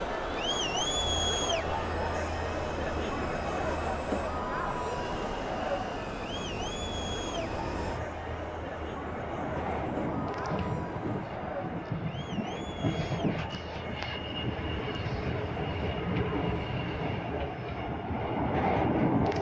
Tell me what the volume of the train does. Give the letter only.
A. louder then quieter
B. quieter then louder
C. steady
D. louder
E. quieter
D.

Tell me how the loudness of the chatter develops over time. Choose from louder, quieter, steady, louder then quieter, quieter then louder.
quieter.